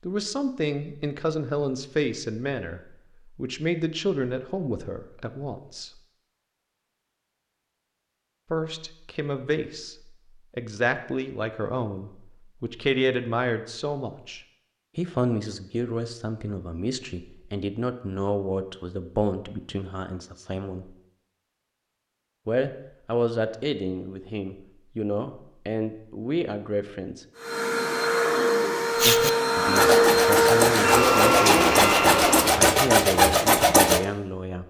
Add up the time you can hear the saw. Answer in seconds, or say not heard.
5 s.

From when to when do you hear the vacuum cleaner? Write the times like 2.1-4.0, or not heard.
27.4-32.6.